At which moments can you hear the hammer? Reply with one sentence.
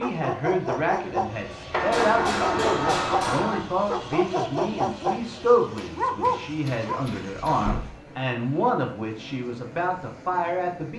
The hammer can be heard from 1.9 to 3.4 s and from 5.8 to 7.7 s.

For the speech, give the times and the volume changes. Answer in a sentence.
The speech can be heard from 0.0 to 10.9 s, at a steady volume.